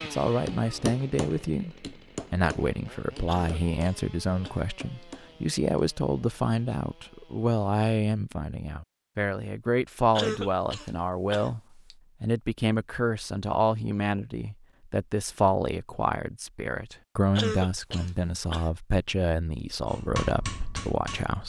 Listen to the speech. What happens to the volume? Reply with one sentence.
The loudness of the speech stays about the same.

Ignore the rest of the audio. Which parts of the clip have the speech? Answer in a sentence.
The speech can be heard from 0.0 to 21.4 s.